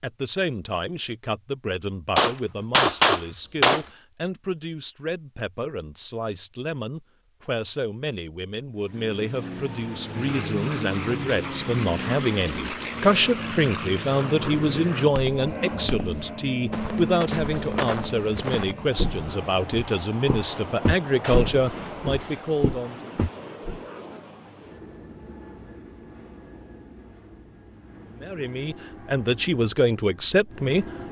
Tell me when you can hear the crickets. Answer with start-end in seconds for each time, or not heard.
not heard.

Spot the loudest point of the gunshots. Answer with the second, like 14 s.
3 s.